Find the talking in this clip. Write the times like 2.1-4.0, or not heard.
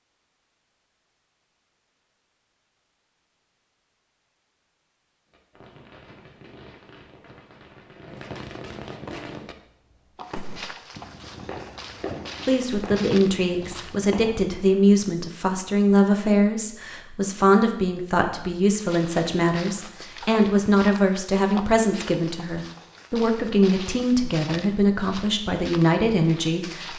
12.4-26.9.